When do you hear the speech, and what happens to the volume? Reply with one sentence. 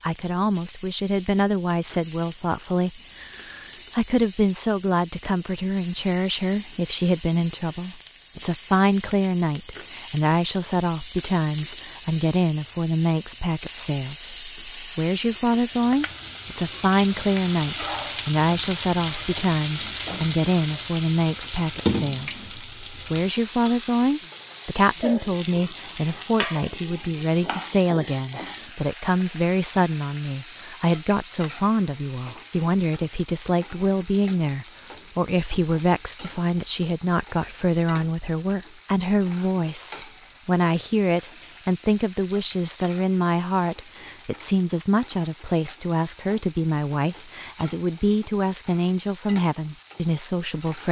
The speech can be heard from 0.0 to 50.8 s, at a steady volume.